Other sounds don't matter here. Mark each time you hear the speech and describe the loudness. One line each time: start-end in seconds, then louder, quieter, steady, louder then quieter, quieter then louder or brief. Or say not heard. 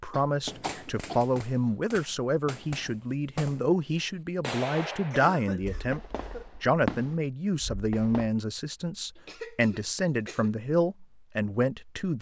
0.0-12.1 steady.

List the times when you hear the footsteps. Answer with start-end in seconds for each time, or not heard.
not heard.